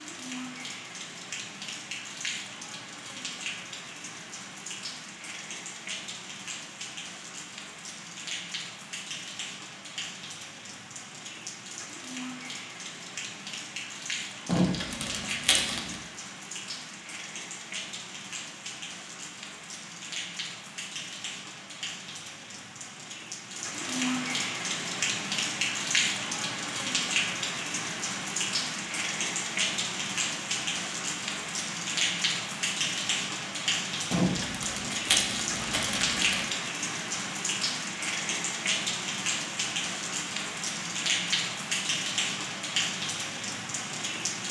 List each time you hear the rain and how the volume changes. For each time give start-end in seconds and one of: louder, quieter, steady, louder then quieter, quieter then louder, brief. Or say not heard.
0.0-44.4 louder.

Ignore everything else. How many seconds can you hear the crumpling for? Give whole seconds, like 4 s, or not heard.
4 s.